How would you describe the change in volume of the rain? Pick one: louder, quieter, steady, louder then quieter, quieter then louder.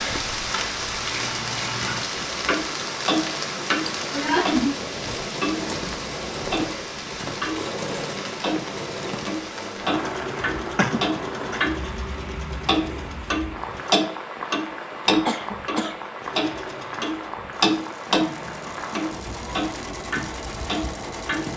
quieter.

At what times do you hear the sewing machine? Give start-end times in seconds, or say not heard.
2.0-14.0, 16.1-21.5.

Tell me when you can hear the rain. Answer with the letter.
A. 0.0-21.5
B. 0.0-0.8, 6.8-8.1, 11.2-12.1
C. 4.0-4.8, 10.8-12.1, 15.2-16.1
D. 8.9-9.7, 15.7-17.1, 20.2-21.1
A.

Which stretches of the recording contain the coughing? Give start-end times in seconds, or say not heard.
4.0-4.8, 10.8-12.1, 15.2-16.1.